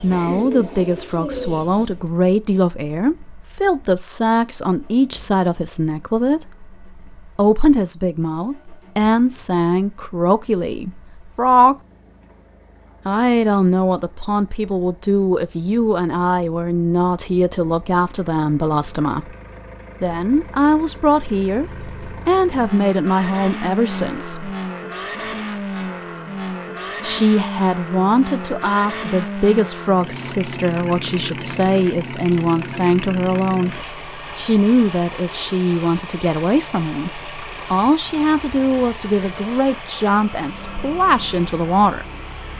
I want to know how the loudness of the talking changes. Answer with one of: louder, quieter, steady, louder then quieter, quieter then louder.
steady.